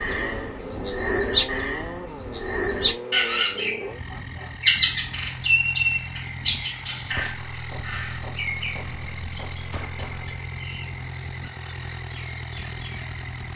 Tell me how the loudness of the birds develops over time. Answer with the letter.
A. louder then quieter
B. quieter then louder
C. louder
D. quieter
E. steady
D.